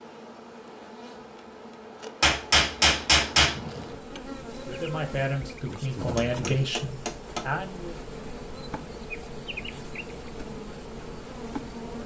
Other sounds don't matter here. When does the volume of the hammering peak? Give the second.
3 s.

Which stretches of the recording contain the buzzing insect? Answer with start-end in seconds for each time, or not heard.
0.0-12.0.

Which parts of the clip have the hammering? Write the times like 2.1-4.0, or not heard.
2.2-3.6, 6.2-7.5.